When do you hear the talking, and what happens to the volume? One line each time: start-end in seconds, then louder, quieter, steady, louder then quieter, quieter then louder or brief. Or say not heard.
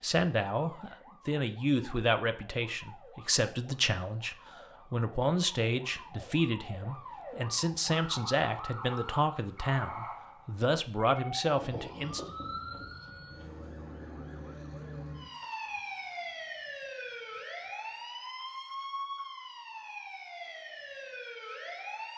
0.0-12.2 steady.